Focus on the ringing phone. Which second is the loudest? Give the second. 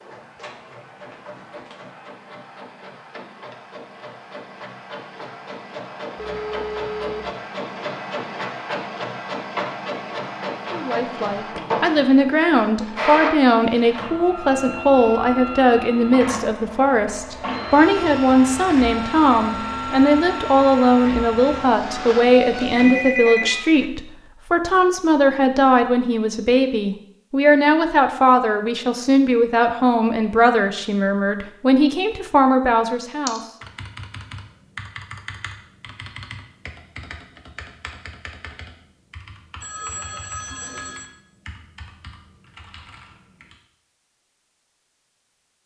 23 s.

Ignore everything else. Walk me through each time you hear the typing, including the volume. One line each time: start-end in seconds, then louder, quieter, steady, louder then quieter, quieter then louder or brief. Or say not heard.
33.2-43.5 quieter.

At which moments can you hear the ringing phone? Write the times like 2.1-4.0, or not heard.
6.2-7.3, 22.8-23.9, 39.6-41.0.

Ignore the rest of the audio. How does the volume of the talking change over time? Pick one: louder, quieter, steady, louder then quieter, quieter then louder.
steady.